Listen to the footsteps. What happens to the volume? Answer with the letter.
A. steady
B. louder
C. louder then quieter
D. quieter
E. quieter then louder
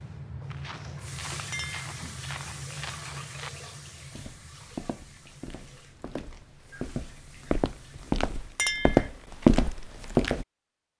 B.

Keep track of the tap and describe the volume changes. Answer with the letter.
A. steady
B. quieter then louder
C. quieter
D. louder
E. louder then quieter
C.